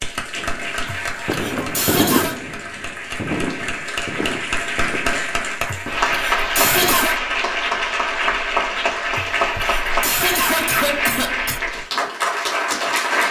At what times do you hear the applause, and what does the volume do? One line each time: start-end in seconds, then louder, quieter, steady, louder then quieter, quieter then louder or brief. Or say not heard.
0.0-13.2 louder.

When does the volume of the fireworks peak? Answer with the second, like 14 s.
2 s.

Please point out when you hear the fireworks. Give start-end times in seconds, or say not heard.
0.3-7.0.